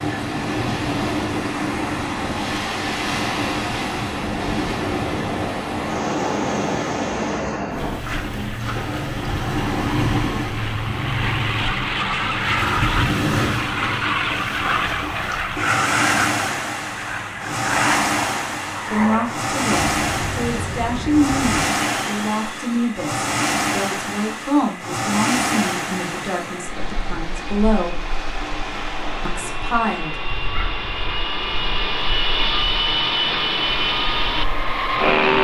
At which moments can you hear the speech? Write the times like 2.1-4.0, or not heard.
18.9-28.1, 29.2-30.3.